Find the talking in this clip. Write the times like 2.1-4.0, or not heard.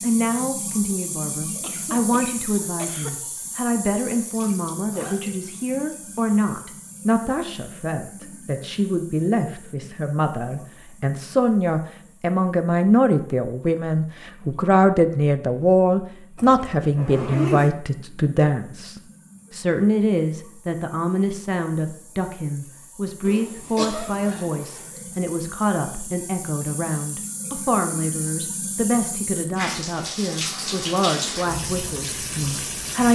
0.0-33.0.